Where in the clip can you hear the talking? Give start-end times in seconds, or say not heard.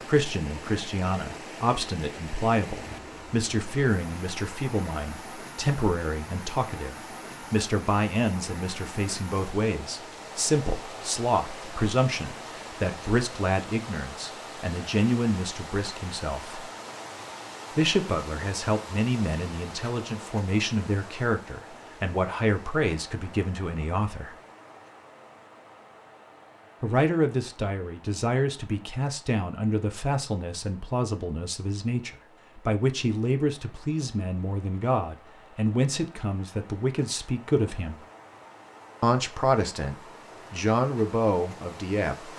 0.0-16.6, 17.8-24.4, 26.8-38.0, 39.0-42.3.